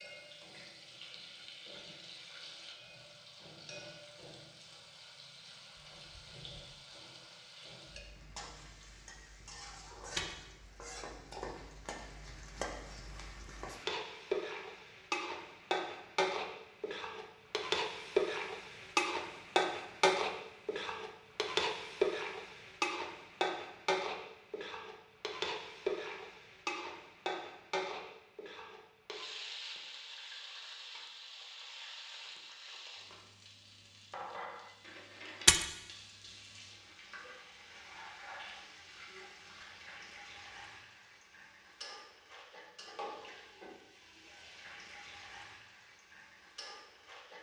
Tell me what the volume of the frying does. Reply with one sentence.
The loudness of the frying goes up, then down.